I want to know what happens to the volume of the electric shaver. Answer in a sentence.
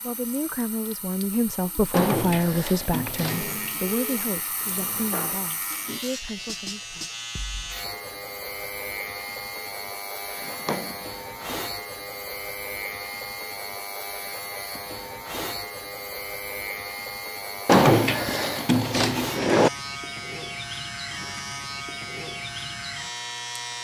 The loudness of the electric shaver stays about the same.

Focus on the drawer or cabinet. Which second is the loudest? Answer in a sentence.
The loudest moment of the drawer or cabinet is at 18 seconds.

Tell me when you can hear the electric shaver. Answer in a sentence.
The electric shaver can be heard from 3.2 to 23.8 s.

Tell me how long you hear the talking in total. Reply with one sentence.
You can hear the talking for 7 seconds altogether.